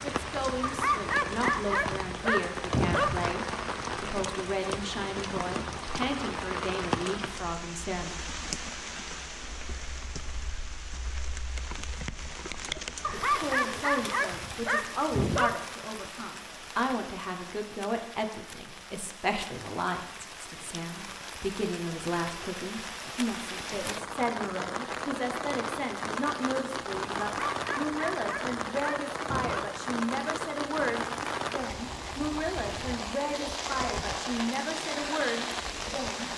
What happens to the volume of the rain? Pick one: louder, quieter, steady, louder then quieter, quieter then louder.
quieter then louder.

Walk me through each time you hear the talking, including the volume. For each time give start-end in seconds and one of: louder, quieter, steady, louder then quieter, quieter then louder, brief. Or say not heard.
0.0-8.2 steady
13.1-36.3 steady.